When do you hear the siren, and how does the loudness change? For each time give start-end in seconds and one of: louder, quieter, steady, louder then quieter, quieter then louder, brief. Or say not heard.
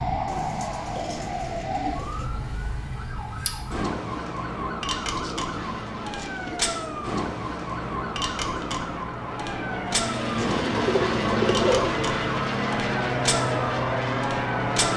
0.0-14.9 steady.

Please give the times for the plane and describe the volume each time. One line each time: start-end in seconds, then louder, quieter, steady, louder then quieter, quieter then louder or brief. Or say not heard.
5.5-14.9 louder.